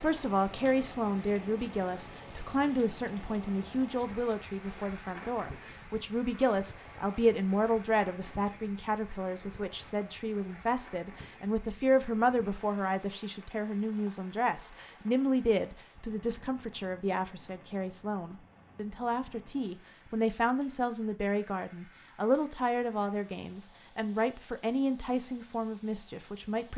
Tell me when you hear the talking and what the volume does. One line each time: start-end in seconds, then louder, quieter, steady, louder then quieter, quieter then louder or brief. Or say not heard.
0.0-26.7 steady.